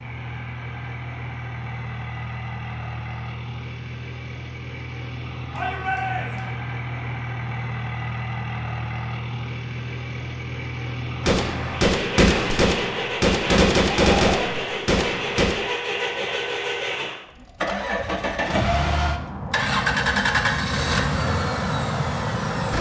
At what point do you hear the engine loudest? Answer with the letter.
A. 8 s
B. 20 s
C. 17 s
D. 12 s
B.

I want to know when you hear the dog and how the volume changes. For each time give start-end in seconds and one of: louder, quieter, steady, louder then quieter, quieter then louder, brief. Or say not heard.
not heard.